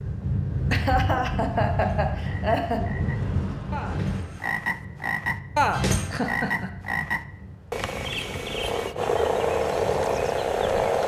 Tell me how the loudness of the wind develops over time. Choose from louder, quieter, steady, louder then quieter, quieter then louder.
quieter.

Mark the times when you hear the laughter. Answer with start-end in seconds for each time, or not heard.
0.7-2.8, 6.1-6.7.